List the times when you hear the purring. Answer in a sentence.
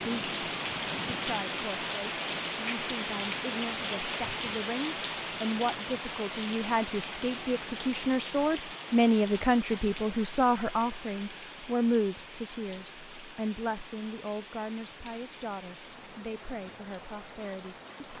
The purring can't be heard in this clip.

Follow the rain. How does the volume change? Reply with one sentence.
The volume of the rain goes down.